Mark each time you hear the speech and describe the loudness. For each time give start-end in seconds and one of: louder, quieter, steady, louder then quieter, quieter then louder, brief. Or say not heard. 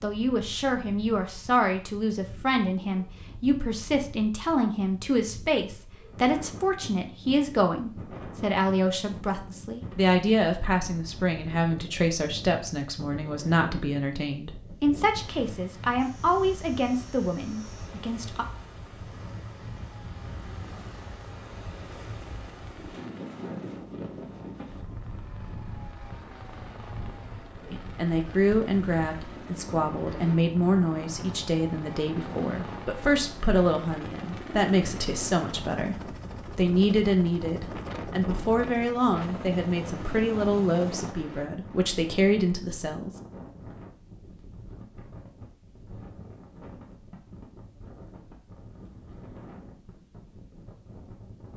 0.0-18.4 steady
27.7-43.1 steady.